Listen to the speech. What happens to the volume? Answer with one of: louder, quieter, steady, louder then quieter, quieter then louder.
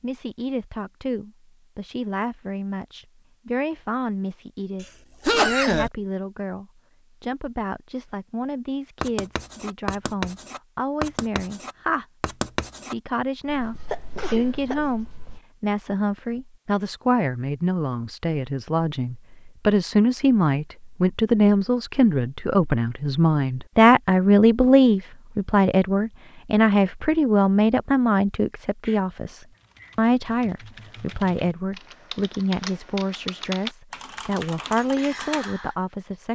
louder then quieter.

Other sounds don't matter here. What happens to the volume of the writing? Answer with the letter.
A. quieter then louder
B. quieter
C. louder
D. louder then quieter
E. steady
B.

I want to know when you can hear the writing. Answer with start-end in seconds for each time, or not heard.
9.0-15.4.